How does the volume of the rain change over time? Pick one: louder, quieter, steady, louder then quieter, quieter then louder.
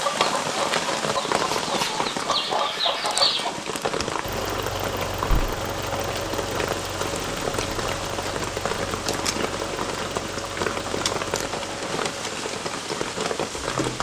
steady.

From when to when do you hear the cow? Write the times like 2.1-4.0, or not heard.
not heard.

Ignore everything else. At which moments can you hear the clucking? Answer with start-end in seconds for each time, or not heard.
0.0-3.5.